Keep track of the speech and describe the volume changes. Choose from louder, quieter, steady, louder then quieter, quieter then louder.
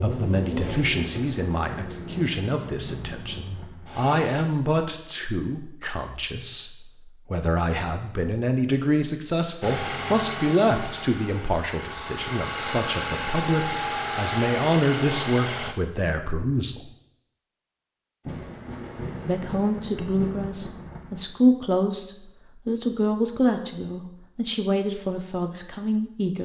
steady.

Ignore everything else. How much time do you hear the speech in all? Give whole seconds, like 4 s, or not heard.
24 s.